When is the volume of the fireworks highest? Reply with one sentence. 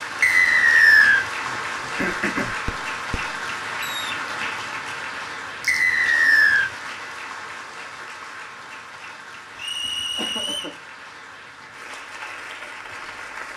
The volume of the fireworks peaks at 4 seconds.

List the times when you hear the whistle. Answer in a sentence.
You can hear the whistle from 0.2 to 1.2 s, from 5.7 to 6.7 s and from 9.6 to 10.8 s.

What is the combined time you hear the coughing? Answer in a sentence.
You can hear the coughing for 3 seconds altogether.